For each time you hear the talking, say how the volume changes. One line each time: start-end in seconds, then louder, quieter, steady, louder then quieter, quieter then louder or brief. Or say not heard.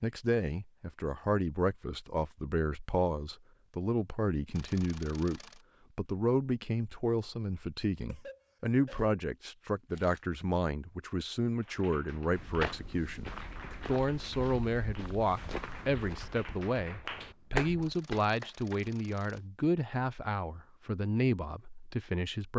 0.0-22.5 steady.